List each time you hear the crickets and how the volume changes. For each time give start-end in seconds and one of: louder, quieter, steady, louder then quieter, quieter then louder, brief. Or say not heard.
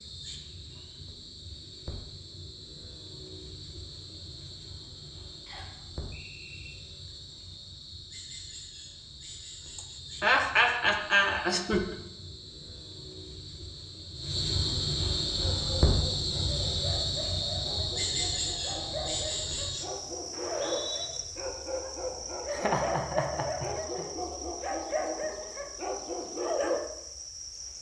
0.0-27.7 louder then quieter.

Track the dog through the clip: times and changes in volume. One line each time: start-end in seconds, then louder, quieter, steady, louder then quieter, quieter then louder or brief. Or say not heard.
15.3-26.8 louder.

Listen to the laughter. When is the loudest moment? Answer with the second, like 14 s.
10 s.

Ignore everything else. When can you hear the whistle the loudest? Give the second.
21 s.